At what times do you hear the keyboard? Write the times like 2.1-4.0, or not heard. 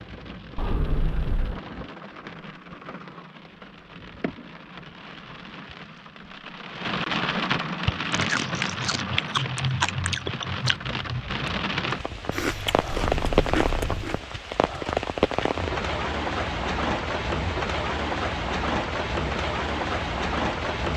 not heard.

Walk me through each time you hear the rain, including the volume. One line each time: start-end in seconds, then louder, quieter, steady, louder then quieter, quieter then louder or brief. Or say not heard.
0.0-20.9 louder.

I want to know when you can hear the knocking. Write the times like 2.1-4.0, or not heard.
0.6-1.6, 12.9-14.1.